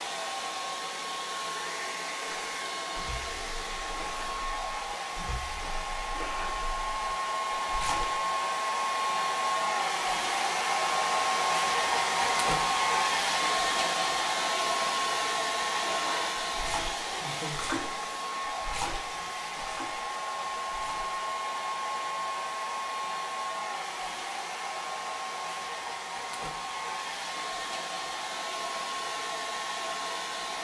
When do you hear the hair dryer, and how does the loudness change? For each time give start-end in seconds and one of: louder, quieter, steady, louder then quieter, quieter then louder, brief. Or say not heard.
0.0-30.5 louder then quieter.